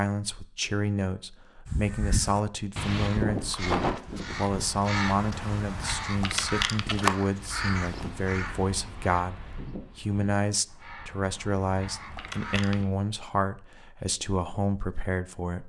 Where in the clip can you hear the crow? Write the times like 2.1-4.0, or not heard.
1.6-12.8.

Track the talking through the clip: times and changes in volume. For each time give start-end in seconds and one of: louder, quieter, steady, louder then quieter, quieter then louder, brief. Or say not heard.
0.0-15.6 steady.